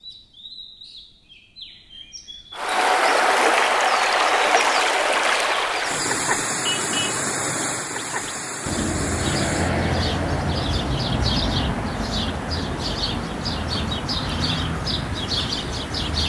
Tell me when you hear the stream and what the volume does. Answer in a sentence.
You can hear the stream from 2.5 to 16.2 s, getting quieter.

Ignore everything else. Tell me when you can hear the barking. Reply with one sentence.
The barking can't be heard in this clip.